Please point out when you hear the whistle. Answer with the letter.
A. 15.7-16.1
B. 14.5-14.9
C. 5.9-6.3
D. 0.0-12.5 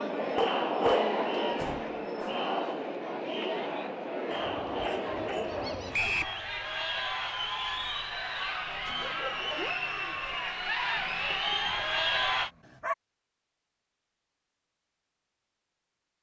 C.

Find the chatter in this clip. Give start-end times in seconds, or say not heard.
0.0-12.5.